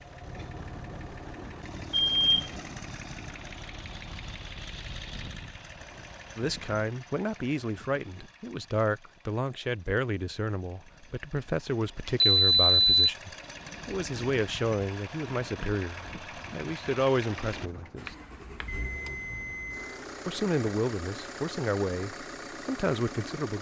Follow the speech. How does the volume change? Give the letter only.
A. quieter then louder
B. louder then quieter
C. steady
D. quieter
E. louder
C.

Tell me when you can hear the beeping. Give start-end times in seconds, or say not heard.
1.9-2.6, 12.1-12.9, 18.1-19.9.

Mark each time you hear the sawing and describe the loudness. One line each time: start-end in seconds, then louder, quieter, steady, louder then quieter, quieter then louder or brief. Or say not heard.
not heard.